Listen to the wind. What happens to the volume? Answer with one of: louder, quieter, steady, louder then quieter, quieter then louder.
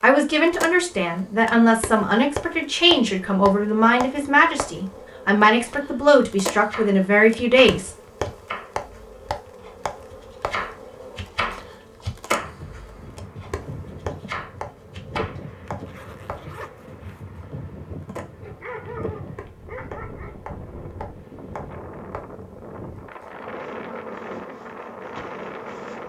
steady.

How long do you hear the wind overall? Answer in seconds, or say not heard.
14 s.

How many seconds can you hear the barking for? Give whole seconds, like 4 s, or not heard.
3 s.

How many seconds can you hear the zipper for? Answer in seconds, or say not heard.
2 s.